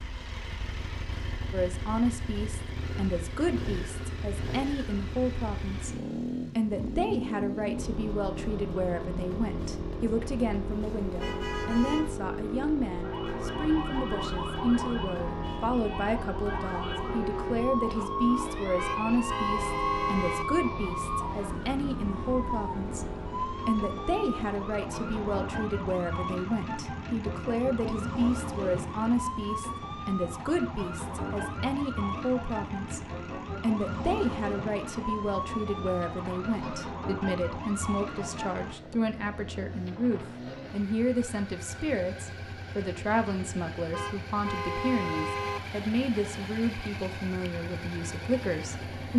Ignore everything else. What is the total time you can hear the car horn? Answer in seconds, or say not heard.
5 s.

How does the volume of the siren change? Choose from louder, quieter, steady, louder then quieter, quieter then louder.
steady.